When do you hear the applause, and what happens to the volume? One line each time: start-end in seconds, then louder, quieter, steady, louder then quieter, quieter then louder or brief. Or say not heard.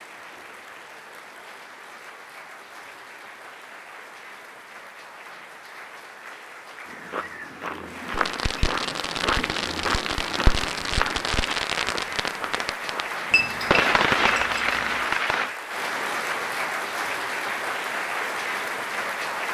0.0-19.4 louder.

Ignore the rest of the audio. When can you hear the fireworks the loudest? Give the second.
14 s.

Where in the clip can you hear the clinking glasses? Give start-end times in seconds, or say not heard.
13.3-15.2.